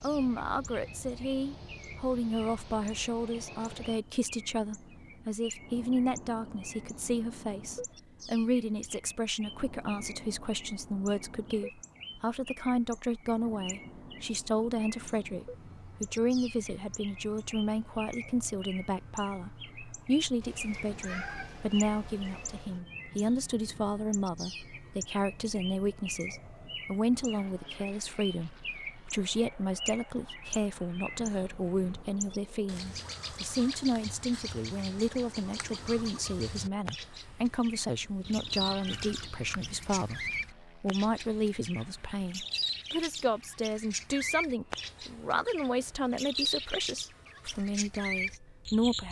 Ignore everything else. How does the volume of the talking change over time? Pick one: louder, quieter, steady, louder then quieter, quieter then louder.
steady.